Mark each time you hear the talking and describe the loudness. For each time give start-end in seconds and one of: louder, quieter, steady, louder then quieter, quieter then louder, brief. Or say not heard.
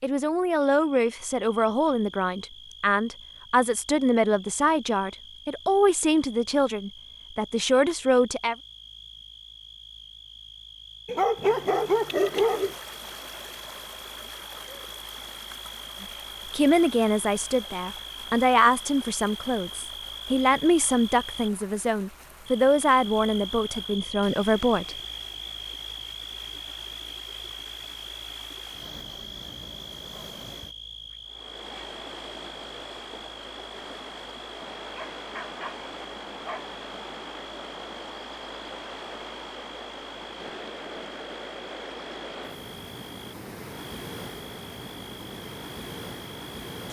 0.0-8.6 steady
16.0-24.9 steady.